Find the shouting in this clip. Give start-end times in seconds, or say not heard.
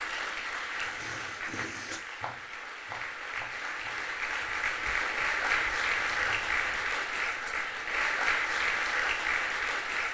not heard.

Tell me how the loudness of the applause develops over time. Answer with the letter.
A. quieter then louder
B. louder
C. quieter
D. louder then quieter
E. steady
B.